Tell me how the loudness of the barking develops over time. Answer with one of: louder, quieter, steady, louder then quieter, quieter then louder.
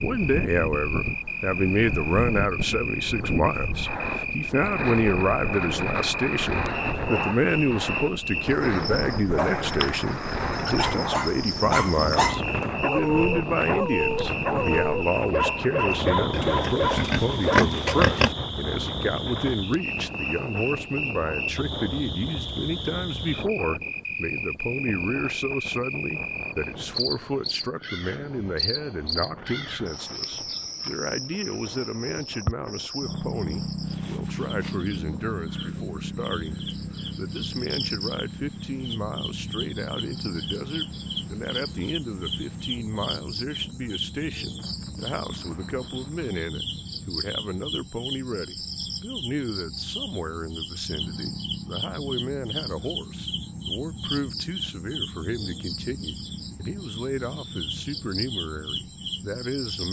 steady.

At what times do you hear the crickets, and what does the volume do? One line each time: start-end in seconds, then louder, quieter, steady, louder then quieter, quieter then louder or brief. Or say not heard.
0.0-59.8 steady.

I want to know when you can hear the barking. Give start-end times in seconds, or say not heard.
10.7-18.1.